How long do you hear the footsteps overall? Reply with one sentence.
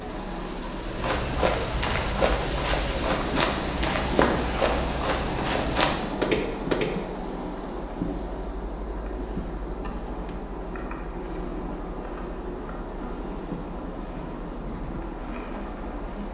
You can hear the footsteps for 6 seconds altogether.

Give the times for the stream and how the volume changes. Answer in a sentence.
You can hear the stream from 0.0 to 16.2 s, getting quieter.